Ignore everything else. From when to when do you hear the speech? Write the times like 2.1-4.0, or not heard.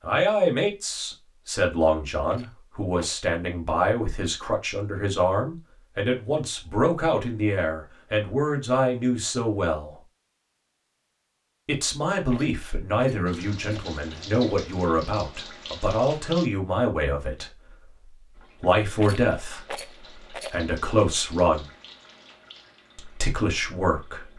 0.0-9.9, 11.7-21.6, 22.9-24.3.